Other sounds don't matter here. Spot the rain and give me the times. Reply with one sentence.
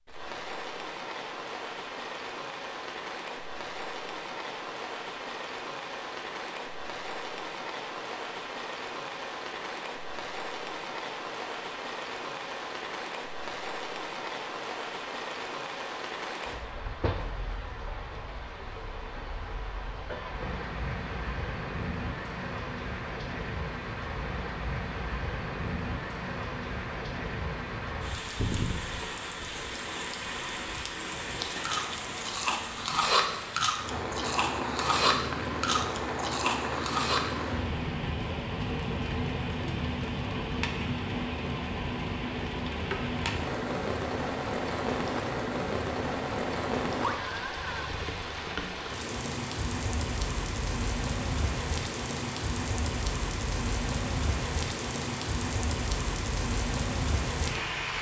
The rain can be heard from 0.0 to 57.9 s.